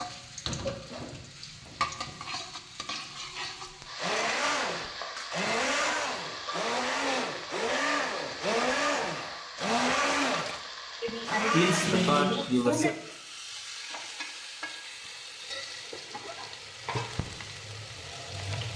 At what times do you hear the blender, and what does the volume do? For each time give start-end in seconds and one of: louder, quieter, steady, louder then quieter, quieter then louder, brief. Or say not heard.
4.0-12.2 steady.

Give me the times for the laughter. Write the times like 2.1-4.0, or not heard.
11.0-12.9.